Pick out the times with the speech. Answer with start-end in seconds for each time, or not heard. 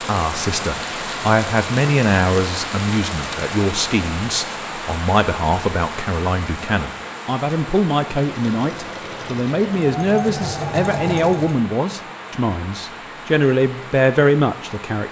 0.1-15.0.